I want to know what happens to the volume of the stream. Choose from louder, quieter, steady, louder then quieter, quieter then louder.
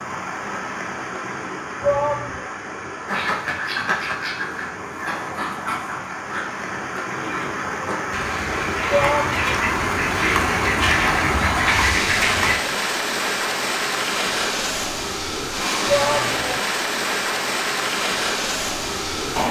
louder.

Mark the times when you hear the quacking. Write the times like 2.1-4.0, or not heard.
3.0-12.6.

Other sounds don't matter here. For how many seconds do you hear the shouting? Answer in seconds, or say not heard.
2 s.